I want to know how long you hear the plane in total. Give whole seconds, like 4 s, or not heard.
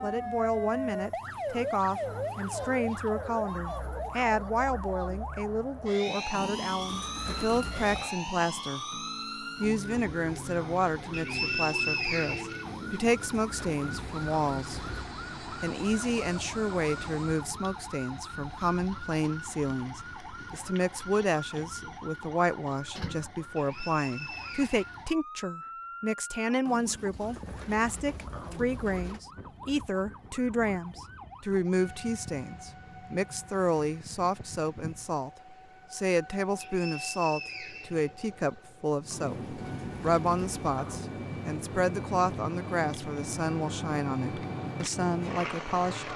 11 s.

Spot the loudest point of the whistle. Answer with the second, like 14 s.
12 s.